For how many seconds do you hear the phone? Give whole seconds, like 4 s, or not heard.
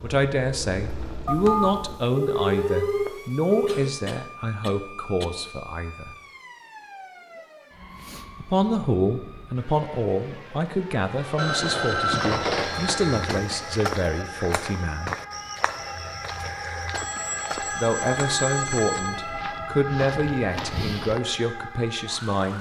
7 s.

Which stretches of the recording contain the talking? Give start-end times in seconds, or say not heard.
0.0-6.2, 8.4-15.2, 17.6-22.5.